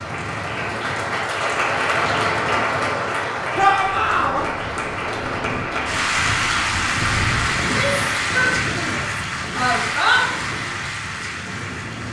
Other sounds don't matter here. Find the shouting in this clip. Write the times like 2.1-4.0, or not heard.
3.5-4.5, 7.6-10.2.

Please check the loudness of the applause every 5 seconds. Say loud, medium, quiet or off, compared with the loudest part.
loud, loud, medium.